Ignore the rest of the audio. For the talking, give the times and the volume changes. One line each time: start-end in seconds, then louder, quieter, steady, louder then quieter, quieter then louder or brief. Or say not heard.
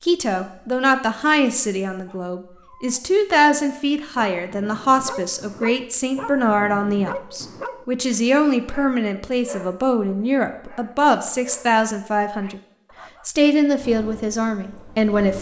0.0-12.6 steady
13.2-15.3 brief.